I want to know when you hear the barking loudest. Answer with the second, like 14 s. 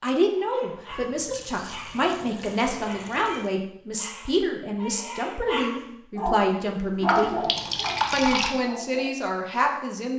7 s.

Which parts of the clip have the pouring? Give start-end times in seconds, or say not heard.
0.8-3.5, 7.0-8.6.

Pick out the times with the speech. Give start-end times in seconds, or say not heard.
0.0-7.5, 8.1-10.1.